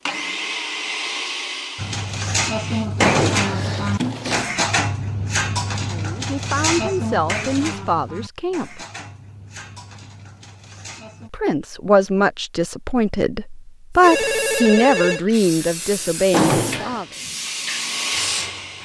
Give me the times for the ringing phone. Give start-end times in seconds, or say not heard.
14.0-15.2.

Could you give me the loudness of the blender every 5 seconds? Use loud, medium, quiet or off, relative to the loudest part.
loud, off, off, loud.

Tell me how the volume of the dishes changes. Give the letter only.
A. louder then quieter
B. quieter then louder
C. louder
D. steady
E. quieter
E.